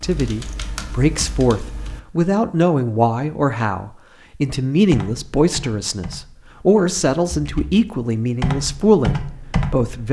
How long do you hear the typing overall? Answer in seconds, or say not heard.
7 s.